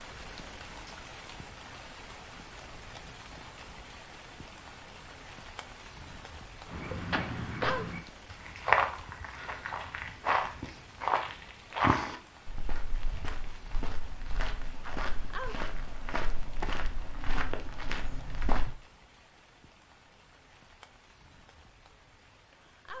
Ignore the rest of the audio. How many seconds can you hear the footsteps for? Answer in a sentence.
You can hear the footsteps for 12 seconds altogether.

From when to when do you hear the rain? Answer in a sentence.
The rain can be heard from 0.0 to 22.9 s.